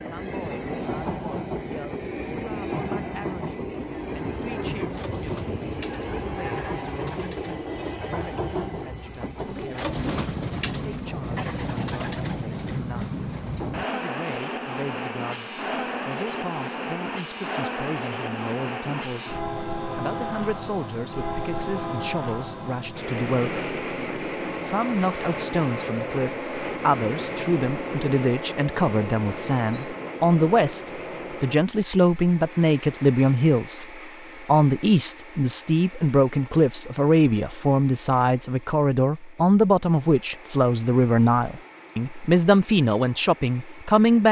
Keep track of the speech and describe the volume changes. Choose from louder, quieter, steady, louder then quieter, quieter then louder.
louder.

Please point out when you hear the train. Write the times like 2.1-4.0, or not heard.
0.0-44.2.